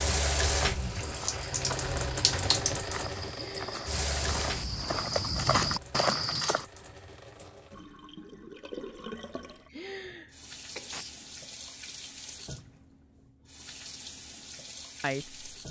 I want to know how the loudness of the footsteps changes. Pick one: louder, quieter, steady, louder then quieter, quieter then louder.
louder.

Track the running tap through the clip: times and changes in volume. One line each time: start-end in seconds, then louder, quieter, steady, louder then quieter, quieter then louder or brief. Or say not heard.
0.0-15.6 quieter.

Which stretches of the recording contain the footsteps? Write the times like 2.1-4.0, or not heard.
1.0-6.7.